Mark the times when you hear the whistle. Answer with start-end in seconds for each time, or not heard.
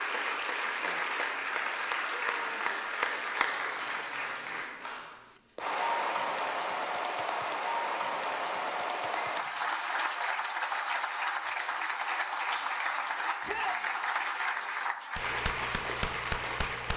not heard.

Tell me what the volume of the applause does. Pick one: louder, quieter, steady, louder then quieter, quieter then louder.
steady.